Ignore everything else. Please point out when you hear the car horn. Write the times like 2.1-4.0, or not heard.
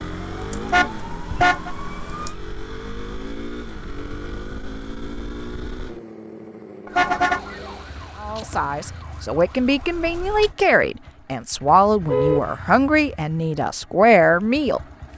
0.7-1.7, 6.8-7.4, 12.0-12.5.